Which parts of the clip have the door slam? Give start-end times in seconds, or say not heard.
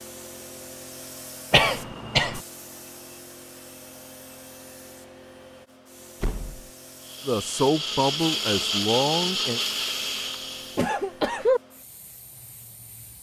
6.2-6.7.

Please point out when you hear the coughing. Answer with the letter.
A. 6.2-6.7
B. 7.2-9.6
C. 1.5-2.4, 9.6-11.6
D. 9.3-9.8
C.